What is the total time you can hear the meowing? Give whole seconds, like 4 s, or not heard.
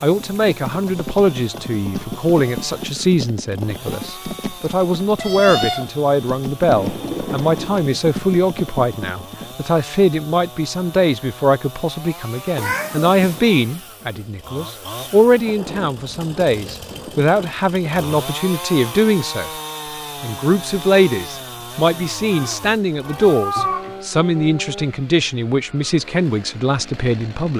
3 s.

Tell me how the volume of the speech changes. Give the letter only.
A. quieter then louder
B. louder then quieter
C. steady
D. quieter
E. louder
C.